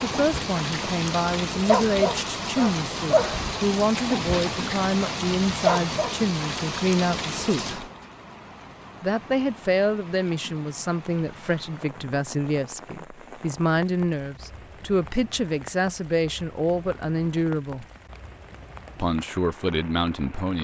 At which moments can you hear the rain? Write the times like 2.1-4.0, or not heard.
0.0-20.5.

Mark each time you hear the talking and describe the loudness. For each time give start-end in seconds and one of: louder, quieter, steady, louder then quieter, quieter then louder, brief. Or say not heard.
0.0-7.8 steady
9.0-17.9 steady
18.9-20.5 brief.